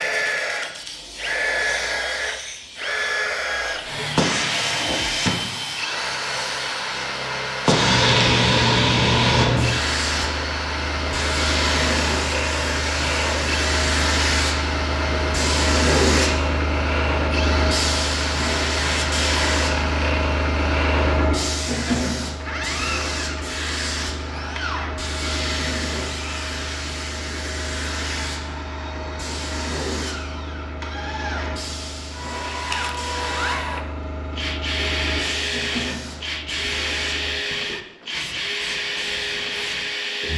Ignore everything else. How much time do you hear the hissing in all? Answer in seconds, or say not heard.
40 s.